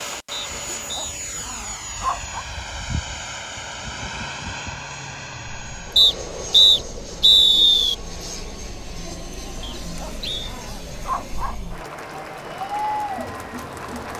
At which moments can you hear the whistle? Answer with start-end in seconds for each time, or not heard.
0.3-1.1, 6.0-8.0, 9.6-10.3.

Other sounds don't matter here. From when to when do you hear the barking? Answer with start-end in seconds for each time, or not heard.
0.5-2.5, 9.6-11.6.